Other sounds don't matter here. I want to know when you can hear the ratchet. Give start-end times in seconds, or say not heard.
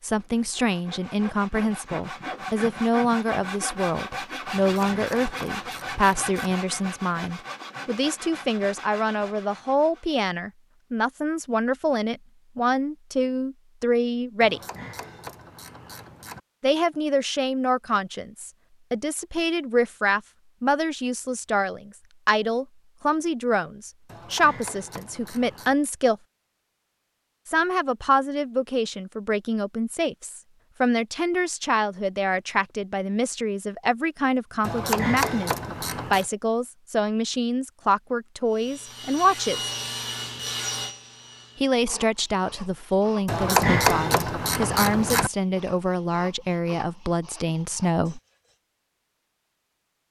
4.5-6.3, 14.4-16.4, 24.1-25.8, 34.6-36.2, 43.2-45.3.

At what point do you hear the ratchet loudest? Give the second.
44 s.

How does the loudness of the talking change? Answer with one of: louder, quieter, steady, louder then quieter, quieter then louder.
steady.